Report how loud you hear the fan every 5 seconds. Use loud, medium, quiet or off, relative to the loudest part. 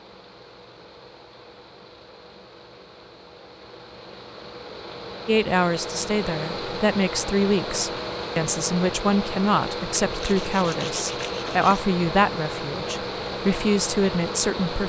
quiet, loud, loud.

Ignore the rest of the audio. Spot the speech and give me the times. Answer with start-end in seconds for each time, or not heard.
5.2-14.8.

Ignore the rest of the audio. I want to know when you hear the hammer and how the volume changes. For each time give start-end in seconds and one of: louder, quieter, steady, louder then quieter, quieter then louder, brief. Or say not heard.
not heard.